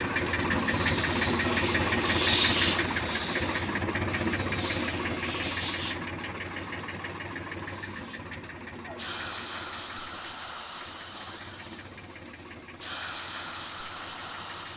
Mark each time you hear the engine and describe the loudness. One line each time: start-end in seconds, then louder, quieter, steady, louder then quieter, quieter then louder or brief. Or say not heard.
0.0-14.7 quieter.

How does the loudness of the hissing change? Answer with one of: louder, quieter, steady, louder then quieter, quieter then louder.
quieter then louder.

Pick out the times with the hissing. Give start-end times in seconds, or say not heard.
0.0-14.7.